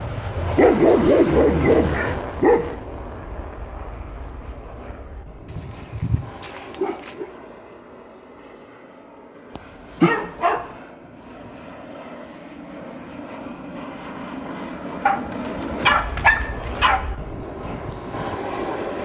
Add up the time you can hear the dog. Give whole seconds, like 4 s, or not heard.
7 s.